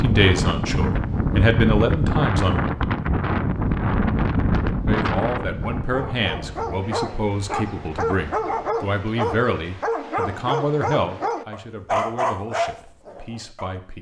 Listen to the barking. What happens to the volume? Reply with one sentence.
The loudness of the barking goes up.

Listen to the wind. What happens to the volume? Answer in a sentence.
The volume of the wind goes down.